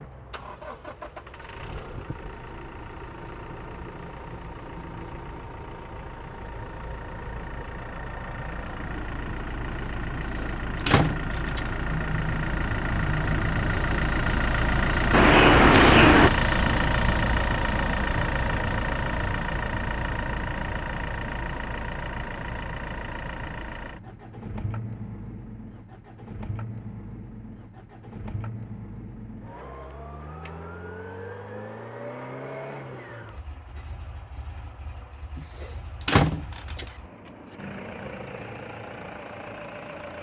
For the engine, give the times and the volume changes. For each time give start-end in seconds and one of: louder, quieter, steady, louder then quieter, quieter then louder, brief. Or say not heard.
0.0-40.1 louder then quieter.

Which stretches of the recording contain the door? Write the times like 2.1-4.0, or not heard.
10.2-11.7, 15.1-16.3, 35.4-36.9.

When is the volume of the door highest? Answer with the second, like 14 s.
16 s.